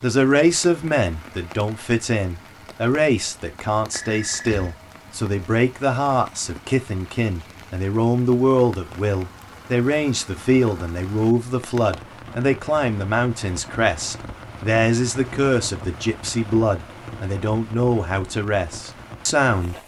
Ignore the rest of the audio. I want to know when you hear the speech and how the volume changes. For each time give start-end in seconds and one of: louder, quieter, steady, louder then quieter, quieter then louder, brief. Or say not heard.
0.0-19.8 steady.